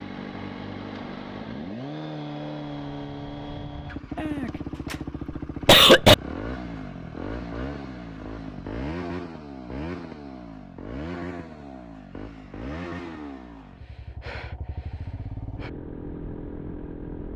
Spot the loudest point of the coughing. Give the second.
6 s.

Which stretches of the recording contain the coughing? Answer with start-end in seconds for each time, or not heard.
4.2-5.0, 5.7-6.2.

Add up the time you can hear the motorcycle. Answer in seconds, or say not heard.
17 s.